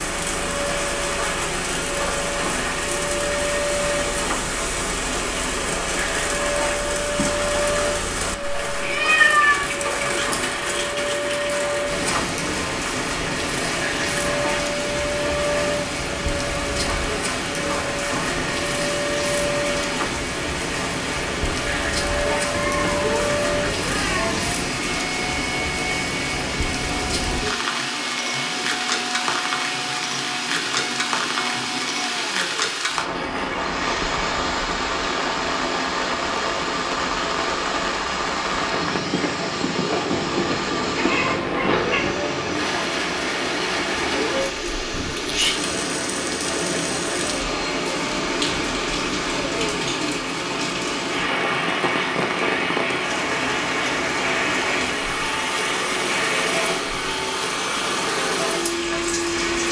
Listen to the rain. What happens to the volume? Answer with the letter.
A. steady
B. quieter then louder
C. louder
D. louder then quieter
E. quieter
A.